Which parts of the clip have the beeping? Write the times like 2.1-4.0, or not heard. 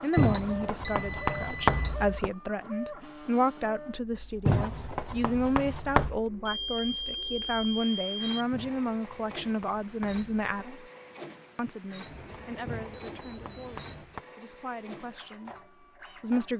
0.1-1.9, 6.5-8.4, 12.1-14.1.